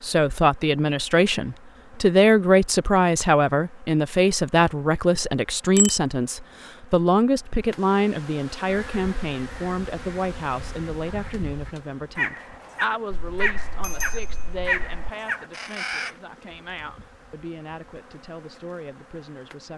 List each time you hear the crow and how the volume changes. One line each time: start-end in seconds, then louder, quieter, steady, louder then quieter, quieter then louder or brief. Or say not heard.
8.7-16.1 louder.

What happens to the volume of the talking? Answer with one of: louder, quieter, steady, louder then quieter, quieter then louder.
quieter.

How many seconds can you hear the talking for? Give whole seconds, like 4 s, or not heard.
20 s.